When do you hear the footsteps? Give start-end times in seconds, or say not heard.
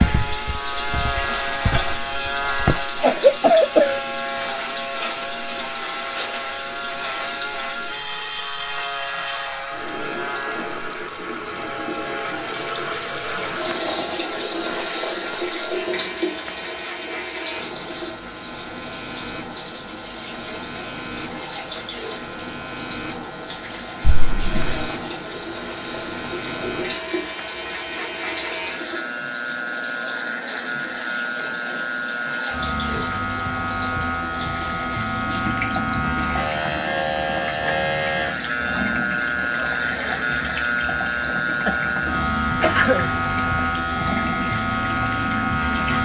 0.0-2.9.